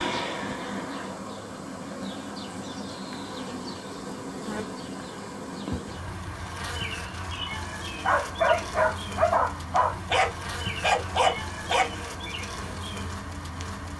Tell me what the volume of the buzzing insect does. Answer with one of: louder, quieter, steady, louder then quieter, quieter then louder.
steady.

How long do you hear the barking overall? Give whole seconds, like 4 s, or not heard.
4 s.